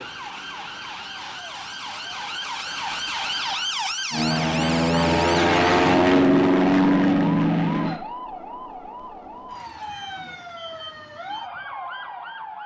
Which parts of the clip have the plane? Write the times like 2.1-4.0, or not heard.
4.1-8.0.